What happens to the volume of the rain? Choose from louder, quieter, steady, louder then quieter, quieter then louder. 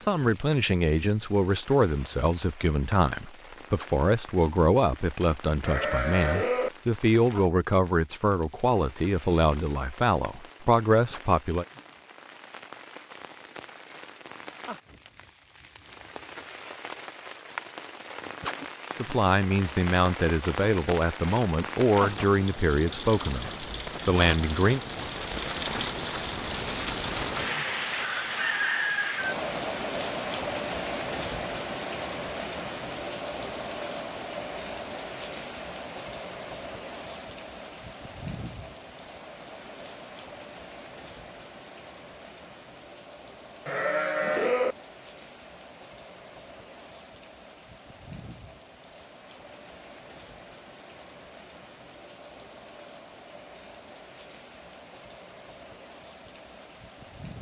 louder then quieter.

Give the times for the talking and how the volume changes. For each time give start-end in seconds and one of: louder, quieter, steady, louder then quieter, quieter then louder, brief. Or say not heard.
0.0-11.7 steady
18.9-24.8 steady.